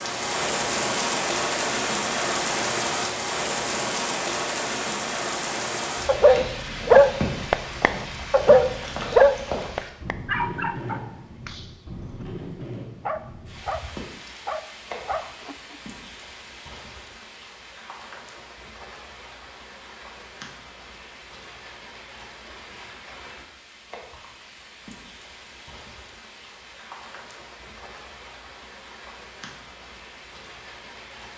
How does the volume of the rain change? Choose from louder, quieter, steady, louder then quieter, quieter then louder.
quieter.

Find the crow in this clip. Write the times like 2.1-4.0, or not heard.
not heard.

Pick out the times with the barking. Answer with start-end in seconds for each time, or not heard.
6.0-15.8.